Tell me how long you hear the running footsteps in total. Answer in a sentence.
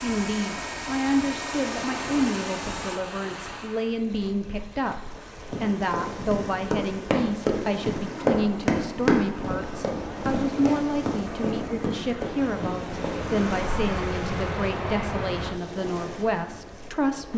You can hear the running footsteps for 8 seconds altogether.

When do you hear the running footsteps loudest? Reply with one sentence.
The volume of the running footsteps peaks at 9 seconds.